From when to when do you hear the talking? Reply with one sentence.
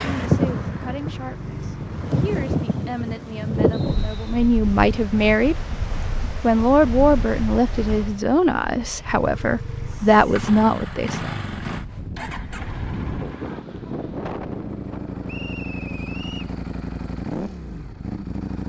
The talking can be heard from 0.0 to 5.7 s and from 6.4 to 11.3 s.